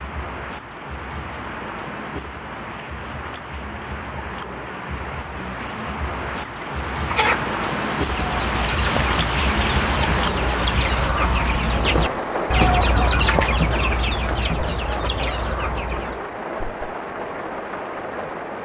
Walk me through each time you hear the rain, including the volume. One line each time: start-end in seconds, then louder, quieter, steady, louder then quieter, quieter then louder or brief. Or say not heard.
0.0-18.5 louder then quieter.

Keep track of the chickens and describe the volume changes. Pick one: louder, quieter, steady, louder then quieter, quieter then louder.
louder then quieter.